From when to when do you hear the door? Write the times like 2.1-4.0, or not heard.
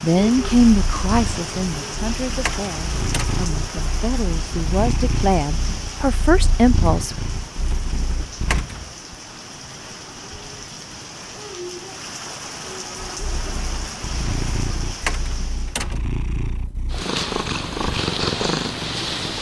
2.5-3.5, 8.5-9.0, 15.1-16.1.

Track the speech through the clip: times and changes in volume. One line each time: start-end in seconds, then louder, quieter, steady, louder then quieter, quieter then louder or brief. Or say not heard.
0.0-7.2 quieter then louder.